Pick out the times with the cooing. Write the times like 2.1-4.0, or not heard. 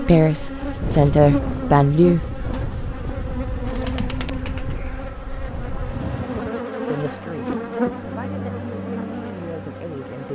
3.6-5.2.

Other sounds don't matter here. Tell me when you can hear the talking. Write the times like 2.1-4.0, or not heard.
0.0-2.2, 6.8-10.2.